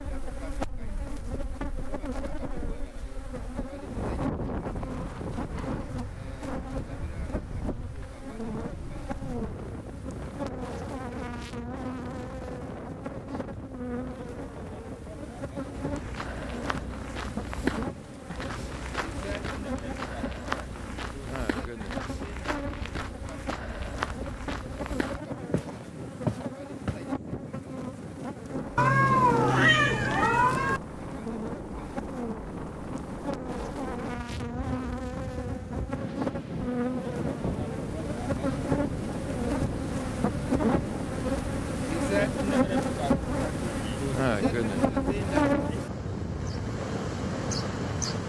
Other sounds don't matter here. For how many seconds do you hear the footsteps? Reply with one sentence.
The footsteps can be heard for 11 seconds in total.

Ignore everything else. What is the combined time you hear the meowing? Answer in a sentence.
You can hear the meowing for 2 seconds altogether.